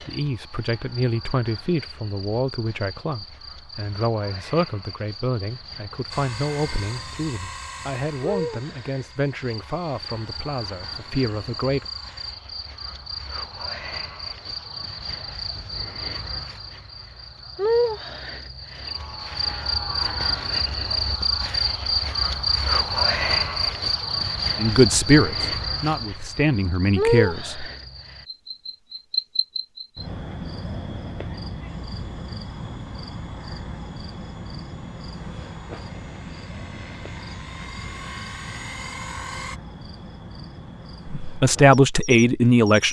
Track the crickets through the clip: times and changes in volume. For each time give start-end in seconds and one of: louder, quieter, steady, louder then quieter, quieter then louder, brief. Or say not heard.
0.0-42.8 louder then quieter.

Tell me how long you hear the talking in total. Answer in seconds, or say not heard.
17 s.